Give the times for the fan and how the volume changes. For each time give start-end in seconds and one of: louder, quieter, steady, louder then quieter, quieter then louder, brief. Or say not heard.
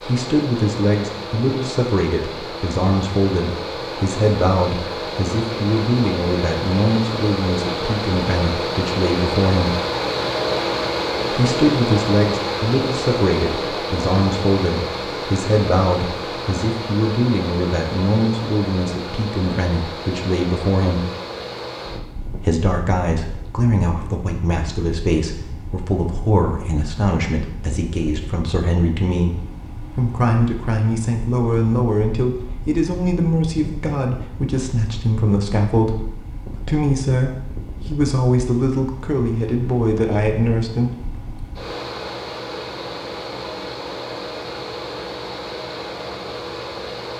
0.0-47.1 quieter then louder.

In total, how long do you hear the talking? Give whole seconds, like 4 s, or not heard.
38 s.